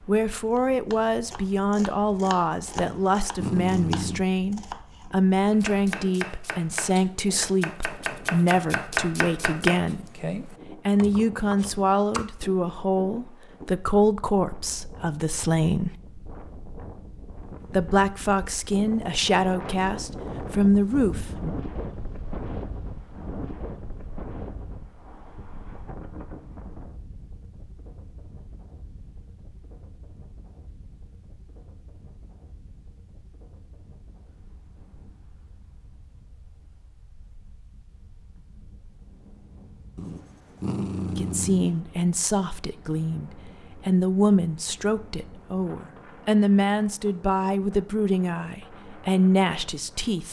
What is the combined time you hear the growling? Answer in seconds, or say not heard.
3 s.